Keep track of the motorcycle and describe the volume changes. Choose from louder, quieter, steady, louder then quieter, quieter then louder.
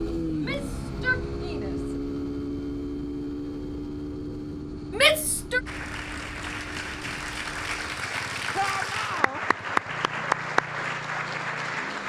quieter.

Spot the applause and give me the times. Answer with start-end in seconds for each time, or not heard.
5.7-12.0.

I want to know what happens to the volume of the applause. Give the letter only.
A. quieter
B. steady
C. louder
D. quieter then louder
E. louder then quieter
C.